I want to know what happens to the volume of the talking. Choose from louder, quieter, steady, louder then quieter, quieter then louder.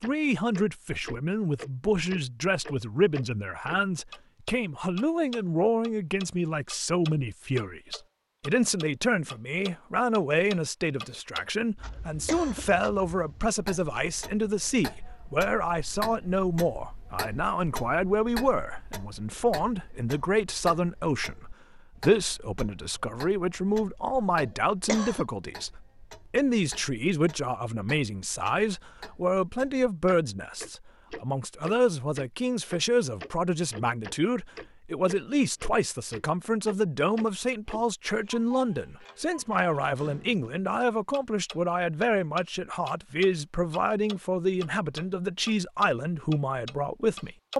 steady.